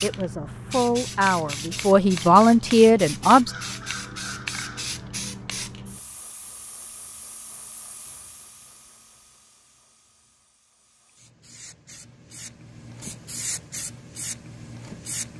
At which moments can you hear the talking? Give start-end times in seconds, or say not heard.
0.0-3.5.